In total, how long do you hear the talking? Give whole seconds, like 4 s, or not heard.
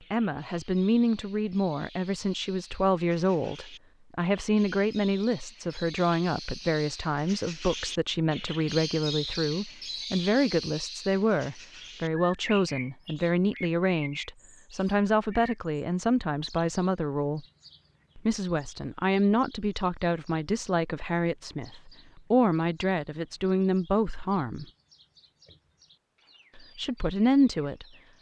25 s.